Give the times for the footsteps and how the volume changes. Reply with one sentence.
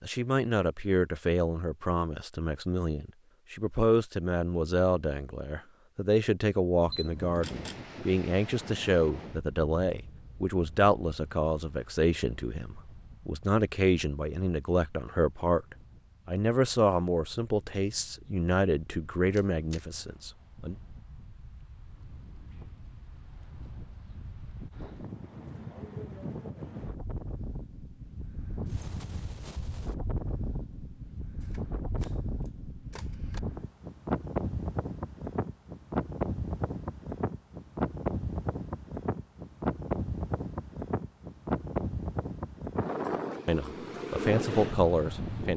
You can't hear the footsteps here.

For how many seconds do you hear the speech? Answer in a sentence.
The speech can be heard for 23 seconds in total.